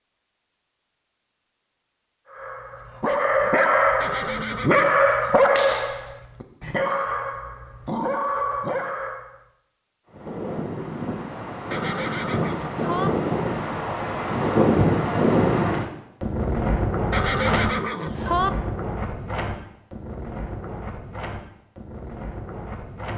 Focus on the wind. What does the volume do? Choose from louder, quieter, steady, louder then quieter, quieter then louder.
louder then quieter.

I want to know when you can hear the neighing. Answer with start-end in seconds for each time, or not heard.
4.0-5.0, 11.7-13.1, 17.1-18.5.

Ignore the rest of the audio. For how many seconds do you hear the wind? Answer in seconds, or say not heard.
13 s.